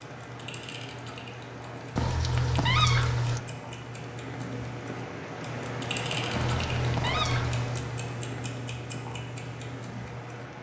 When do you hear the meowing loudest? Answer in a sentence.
The loudest moment of the meowing is at 3 seconds.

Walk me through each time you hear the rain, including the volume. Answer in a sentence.
You can hear the rain from 0.0 to 10.5 s, getting louder then quieter.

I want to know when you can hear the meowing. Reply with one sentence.
The meowing can be heard from 1.9 to 3.4 s and from 6.3 to 7.8 s.